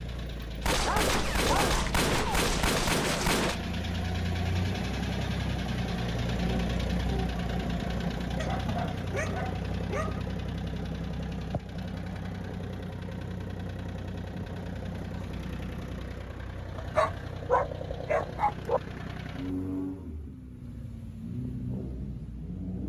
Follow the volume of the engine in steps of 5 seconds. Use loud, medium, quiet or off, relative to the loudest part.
loud, loud, medium, medium, medium.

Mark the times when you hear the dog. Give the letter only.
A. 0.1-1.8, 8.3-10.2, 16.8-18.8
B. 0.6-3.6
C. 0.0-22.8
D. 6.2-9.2
A.